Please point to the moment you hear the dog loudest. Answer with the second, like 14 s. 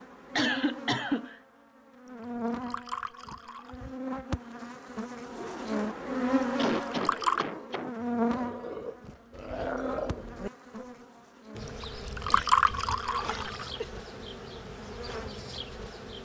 10 s.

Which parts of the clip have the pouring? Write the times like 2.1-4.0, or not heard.
2.2-3.8, 6.7-7.5, 11.8-13.7.